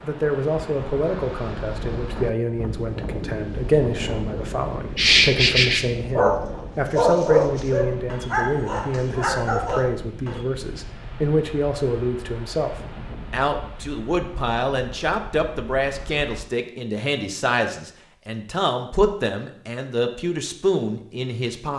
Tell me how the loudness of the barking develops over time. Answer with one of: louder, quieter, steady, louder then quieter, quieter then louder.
quieter.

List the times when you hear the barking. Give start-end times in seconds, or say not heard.
5.0-10.4.